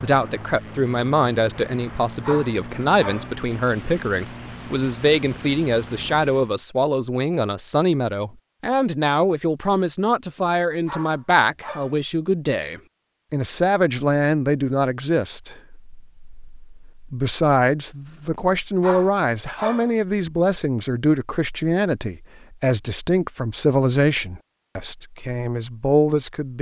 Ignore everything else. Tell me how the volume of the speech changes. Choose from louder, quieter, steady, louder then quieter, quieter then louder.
steady.